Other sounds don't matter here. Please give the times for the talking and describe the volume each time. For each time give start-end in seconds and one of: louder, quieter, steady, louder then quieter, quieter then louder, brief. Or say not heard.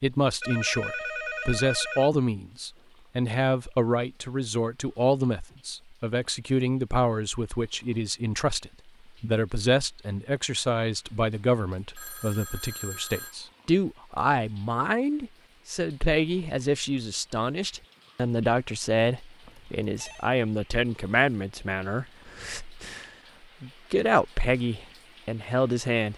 0.0-26.1 steady.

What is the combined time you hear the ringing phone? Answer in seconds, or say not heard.
4 s.